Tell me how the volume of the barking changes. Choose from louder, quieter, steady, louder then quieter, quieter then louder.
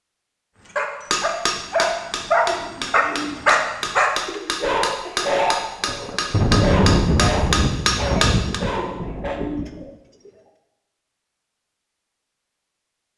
quieter.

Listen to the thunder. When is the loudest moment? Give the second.
7 s.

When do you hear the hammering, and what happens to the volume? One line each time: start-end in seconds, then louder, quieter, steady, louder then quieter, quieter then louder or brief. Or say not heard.
1.1-8.6 louder.